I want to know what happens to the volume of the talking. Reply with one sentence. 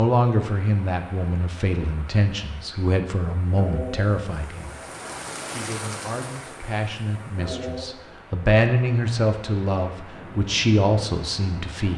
The loudness of the talking goes down, then up.